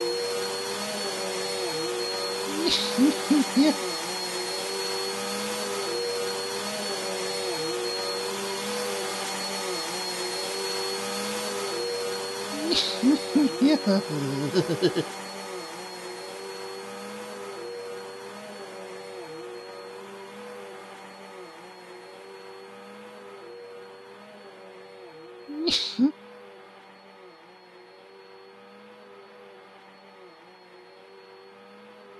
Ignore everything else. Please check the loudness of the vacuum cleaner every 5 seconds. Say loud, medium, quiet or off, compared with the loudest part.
loud, loud, loud, medium, quiet, quiet, quiet.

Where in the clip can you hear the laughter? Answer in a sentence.
You can hear the laughter from 2.5 to 3.8 s, from 12.5 to 15.1 s and from 25.4 to 26.1 s.